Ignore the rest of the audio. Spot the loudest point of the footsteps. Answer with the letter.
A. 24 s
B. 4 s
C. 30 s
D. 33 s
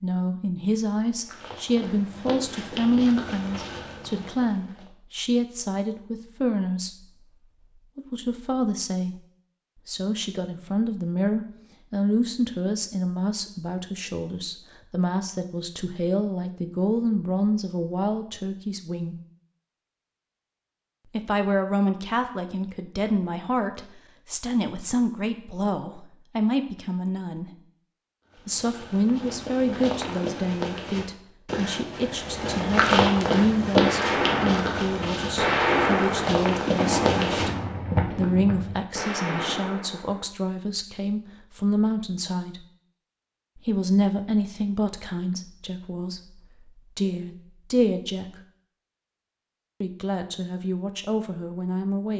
D.